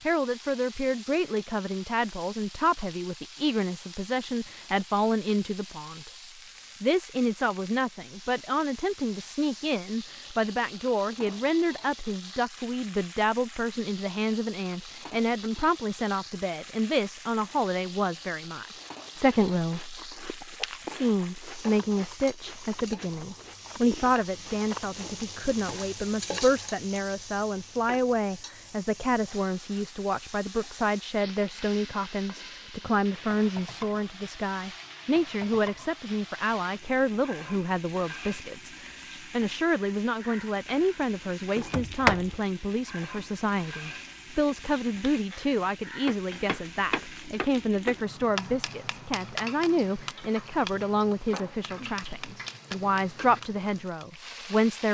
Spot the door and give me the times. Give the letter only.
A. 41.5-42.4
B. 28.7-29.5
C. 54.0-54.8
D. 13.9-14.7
A.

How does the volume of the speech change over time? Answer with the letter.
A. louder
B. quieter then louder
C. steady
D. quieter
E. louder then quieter
C.